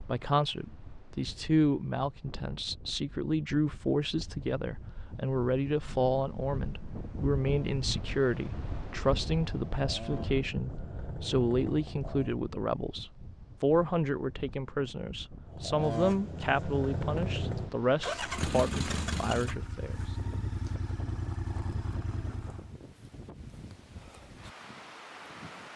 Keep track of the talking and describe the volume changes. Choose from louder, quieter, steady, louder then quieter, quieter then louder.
steady.